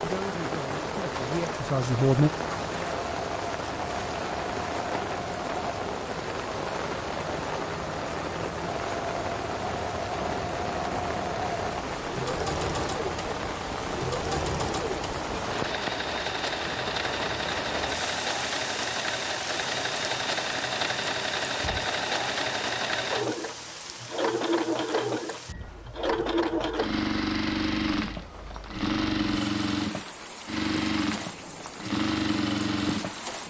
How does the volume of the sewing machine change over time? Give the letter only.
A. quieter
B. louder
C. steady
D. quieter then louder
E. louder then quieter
B.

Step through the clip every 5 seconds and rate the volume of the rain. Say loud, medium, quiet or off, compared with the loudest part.
loud, loud, loud, loud, medium, quiet, medium.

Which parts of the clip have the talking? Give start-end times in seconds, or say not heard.
0.0-2.3.